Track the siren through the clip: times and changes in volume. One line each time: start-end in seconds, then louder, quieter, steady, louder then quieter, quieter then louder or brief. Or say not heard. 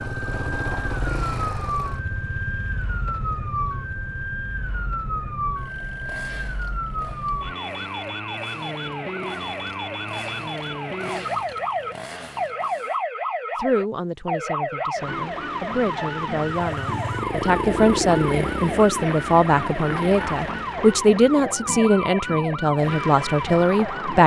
0.1-24.2 steady.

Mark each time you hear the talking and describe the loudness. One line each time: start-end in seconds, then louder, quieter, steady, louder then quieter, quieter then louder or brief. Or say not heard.
13.6-24.2 louder.